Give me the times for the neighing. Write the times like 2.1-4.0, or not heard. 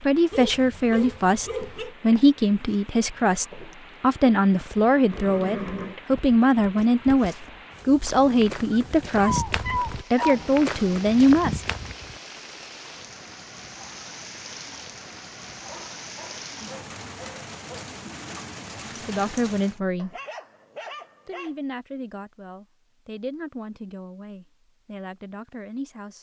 5.1-6.0.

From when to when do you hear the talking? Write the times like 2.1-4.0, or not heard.
0.0-11.6, 19.1-20.1, 21.2-26.1.